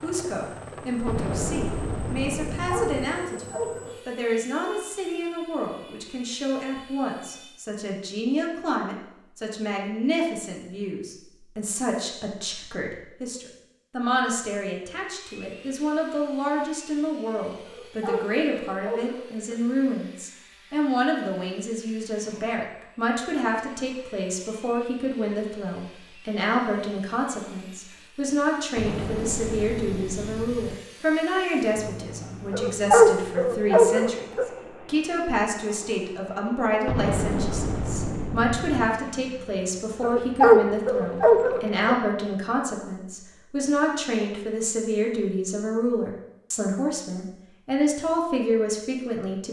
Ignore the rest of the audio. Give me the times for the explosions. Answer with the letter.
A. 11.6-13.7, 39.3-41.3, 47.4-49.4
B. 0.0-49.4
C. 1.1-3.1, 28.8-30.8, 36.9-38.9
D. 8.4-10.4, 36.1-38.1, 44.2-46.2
C.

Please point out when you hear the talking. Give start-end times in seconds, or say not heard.
0.0-49.4.